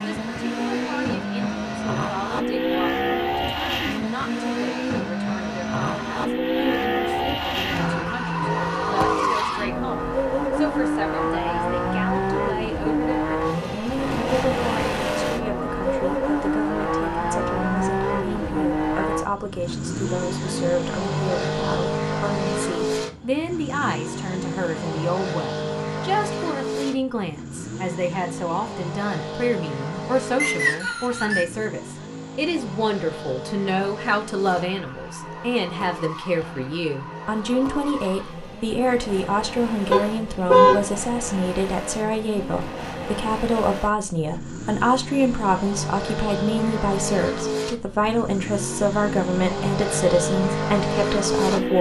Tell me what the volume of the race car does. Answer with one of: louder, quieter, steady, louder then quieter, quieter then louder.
quieter then louder.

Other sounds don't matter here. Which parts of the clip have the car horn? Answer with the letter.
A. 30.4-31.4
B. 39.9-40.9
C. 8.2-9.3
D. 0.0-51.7
B.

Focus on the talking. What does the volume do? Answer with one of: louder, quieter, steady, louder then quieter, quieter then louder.
louder.